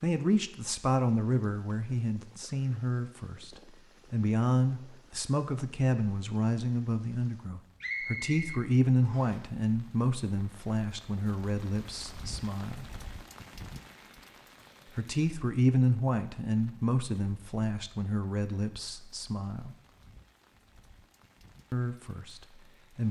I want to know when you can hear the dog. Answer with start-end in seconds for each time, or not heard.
not heard.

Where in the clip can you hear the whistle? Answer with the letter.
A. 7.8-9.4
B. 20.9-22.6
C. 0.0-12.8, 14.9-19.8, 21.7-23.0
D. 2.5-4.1
A.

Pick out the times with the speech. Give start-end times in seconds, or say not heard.
0.0-12.8, 14.9-19.8, 21.7-23.0.